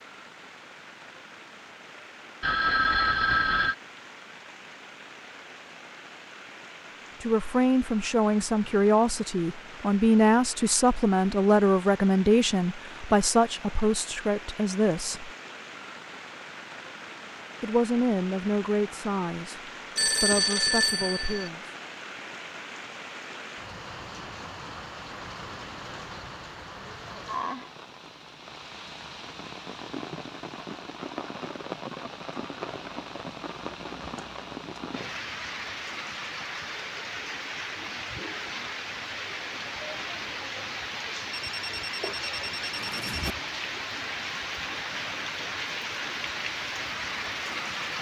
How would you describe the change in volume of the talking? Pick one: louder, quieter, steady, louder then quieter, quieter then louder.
quieter.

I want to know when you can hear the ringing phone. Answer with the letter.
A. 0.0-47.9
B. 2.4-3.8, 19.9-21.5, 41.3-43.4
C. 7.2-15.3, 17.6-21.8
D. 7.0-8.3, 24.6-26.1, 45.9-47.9
B.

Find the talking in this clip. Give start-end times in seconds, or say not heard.
7.2-15.3, 17.6-21.8.